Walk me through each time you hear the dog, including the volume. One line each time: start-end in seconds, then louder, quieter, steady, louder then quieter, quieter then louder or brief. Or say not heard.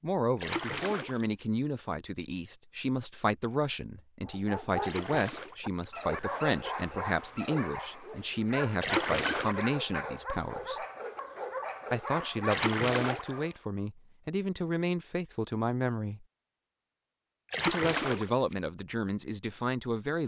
4.2-13.6 steady.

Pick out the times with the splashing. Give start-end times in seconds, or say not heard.
0.4-1.4, 4.8-5.7, 8.8-9.7, 12.5-13.6, 17.5-18.6.